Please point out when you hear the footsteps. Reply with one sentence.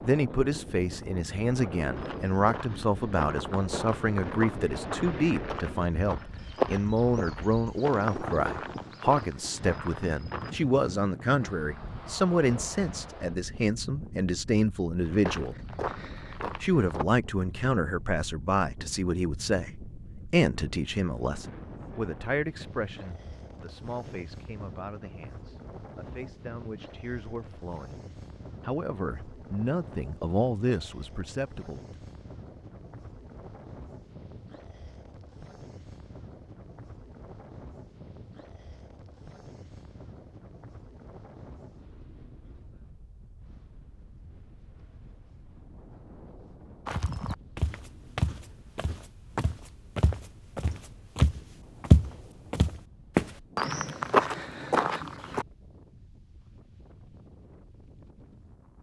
You can hear the footsteps from 1.9 to 10.6 s, from 15.0 to 17.1 s and from 46.9 to 55.5 s.